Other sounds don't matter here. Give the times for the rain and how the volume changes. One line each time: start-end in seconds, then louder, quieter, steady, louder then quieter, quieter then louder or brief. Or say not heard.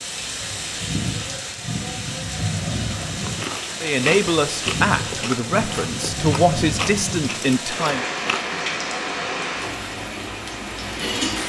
0.0-11.4 steady.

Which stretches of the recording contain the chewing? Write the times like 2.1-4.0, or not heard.
2.9-8.6.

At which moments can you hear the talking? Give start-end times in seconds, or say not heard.
3.8-8.1.